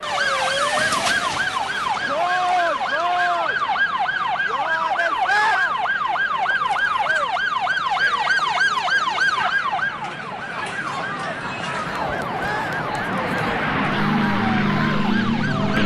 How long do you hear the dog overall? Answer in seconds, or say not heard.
not heard.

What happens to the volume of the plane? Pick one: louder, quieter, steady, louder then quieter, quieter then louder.
louder.